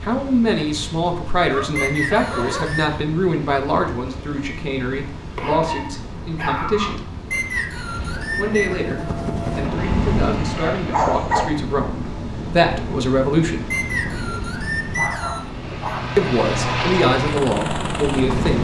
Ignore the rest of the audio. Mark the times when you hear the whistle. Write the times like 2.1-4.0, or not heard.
1.8-2.9, 7.3-8.8, 13.7-15.5.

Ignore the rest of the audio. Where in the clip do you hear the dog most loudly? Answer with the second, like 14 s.
11 s.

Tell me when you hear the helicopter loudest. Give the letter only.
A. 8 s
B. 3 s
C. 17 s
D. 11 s
C.